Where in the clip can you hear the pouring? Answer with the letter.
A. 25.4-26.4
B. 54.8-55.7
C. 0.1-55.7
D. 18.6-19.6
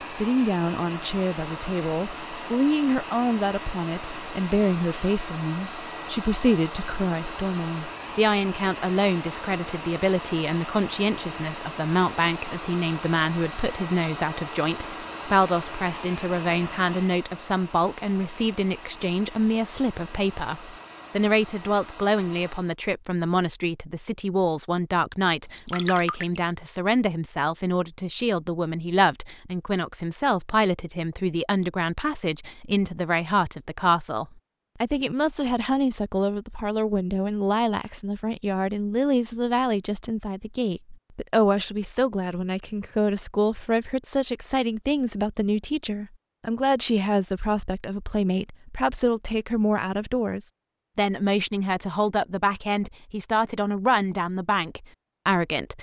A.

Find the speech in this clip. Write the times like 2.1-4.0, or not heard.
0.1-55.7.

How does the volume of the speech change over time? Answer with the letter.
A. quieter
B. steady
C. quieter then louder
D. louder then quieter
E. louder
B.